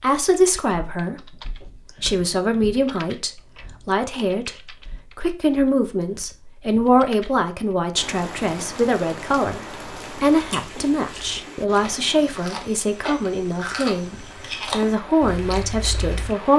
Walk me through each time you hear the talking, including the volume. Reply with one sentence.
The talking can be heard from 0.0 to 16.5 s, at a steady volume.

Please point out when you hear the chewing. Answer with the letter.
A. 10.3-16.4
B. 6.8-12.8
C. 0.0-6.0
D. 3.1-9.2
A.